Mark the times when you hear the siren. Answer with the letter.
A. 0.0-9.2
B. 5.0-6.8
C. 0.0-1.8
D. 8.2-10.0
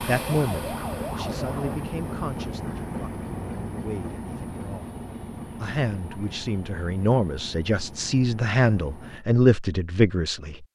C.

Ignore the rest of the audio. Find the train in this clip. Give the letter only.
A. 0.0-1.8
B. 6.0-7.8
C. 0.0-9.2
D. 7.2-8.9
C.